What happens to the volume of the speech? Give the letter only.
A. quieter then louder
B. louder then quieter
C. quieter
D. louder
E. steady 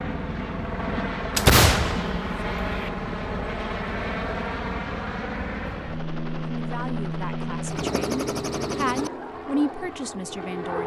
B.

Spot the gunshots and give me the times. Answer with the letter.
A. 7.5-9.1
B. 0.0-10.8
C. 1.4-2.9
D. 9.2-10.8
C.